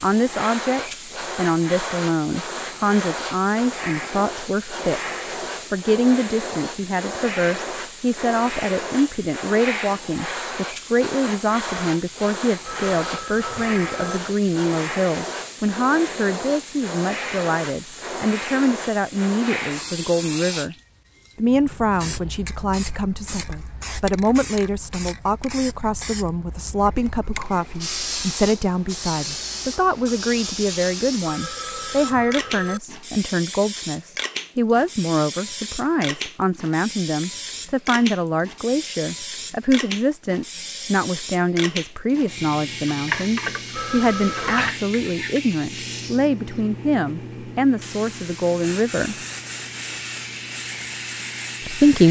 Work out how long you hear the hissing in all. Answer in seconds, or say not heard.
52 s.